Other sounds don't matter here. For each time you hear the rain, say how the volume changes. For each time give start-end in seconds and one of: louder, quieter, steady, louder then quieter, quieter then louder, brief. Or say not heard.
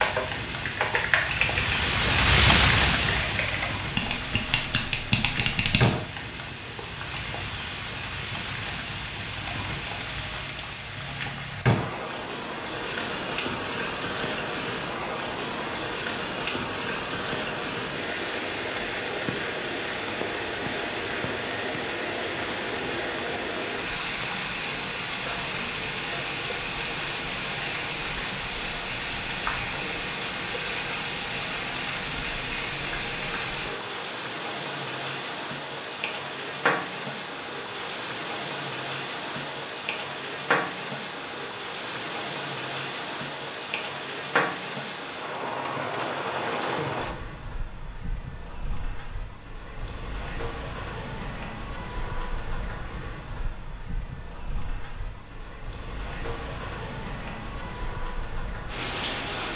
0.0-59.5 quieter.